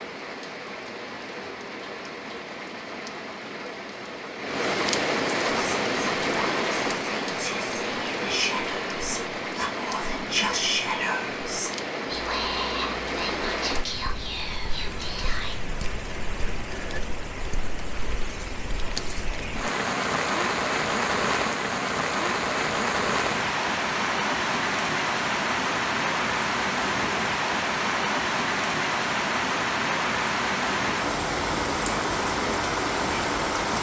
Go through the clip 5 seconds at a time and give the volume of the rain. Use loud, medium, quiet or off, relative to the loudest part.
medium, loud, medium, medium, loud, loud, loud.